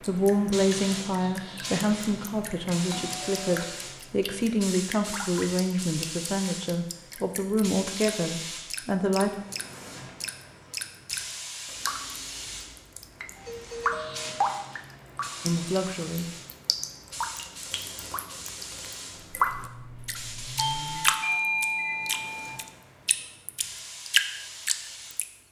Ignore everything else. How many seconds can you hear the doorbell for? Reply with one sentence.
You can hear the doorbell for 4 seconds altogether.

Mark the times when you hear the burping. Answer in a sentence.
You can't hear the burping here.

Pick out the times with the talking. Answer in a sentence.
The talking can be heard from 0.1 to 9.3 s and from 15.4 to 16.2 s.